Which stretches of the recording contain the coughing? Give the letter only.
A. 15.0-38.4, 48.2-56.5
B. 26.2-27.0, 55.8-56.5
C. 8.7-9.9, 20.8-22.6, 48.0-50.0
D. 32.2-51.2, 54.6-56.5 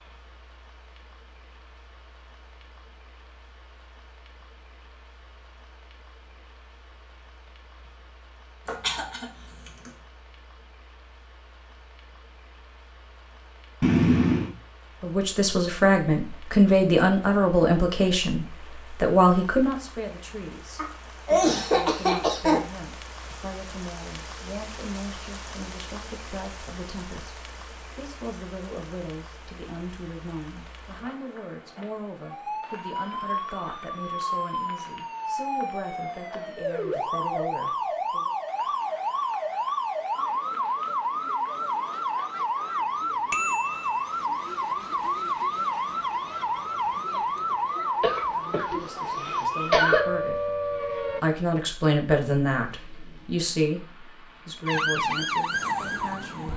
C.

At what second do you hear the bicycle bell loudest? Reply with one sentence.
The loudest moment of the bicycle bell is at 14 seconds.